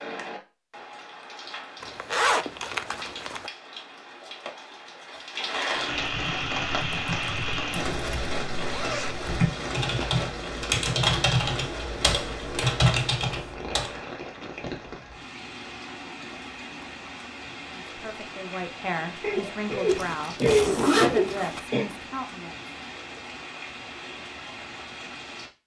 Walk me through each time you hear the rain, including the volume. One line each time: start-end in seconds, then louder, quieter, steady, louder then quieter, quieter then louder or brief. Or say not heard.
0.0-25.5 louder then quieter.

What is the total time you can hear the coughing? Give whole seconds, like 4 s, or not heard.
3 s.